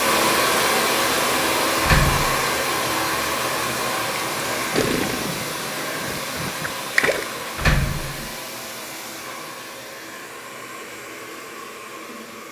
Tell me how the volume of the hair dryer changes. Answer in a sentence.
The loudness of the hair dryer goes down.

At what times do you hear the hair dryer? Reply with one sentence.
The hair dryer can be heard from 0.0 to 12.4 s.